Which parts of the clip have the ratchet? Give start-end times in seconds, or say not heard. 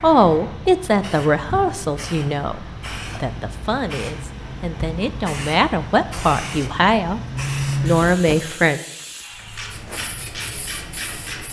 9.3-11.4.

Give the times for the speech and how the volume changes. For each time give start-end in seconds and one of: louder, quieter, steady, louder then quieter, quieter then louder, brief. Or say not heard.
0.0-7.2 quieter then louder
7.8-8.8 brief.